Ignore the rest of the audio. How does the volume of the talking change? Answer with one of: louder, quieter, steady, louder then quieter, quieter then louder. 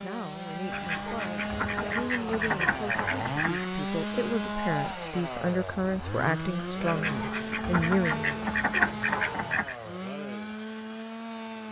louder.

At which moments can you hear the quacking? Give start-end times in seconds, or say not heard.
0.7-3.7, 6.8-9.8.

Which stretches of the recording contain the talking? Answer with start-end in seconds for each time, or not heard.
0.0-8.4.